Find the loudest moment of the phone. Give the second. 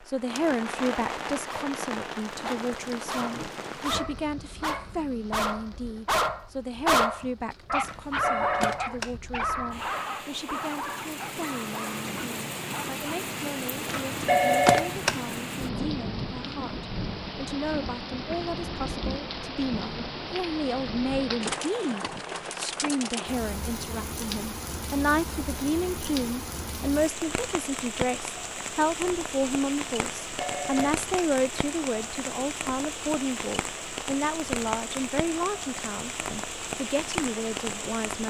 15 s.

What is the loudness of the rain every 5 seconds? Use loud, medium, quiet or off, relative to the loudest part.
loud, quiet, loud, loud, loud, loud, loud, loud.